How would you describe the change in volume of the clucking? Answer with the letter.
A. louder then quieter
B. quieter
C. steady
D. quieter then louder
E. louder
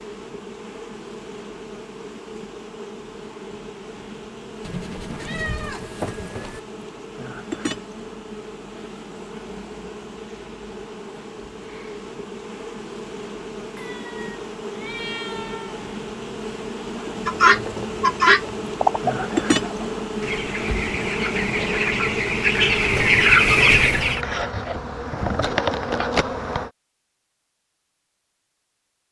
D.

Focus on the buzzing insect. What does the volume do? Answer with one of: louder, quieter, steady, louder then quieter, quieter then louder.
louder.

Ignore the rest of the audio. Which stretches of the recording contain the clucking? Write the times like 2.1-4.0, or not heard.
17.2-24.2.